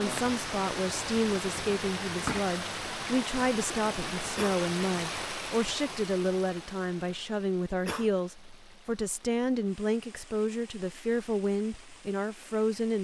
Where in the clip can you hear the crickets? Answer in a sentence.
The crickets can't be heard in this clip.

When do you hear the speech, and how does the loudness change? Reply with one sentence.
The speech can be heard from 0.0 to 12.9 s, at a steady volume.